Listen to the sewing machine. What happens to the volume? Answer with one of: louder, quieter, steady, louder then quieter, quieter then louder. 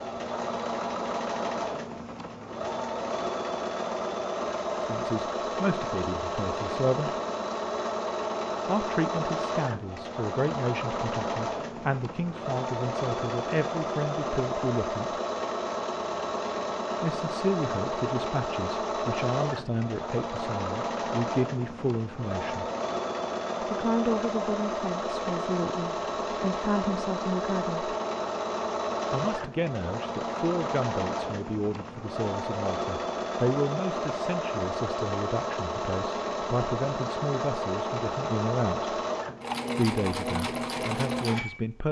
steady.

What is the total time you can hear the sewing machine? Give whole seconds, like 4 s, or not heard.
42 s.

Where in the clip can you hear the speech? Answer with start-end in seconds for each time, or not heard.
4.8-7.1, 8.7-15.2, 17.0-22.6, 23.6-27.9, 29.1-39.0, 39.8-41.8.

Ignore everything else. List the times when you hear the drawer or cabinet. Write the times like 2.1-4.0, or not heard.
not heard.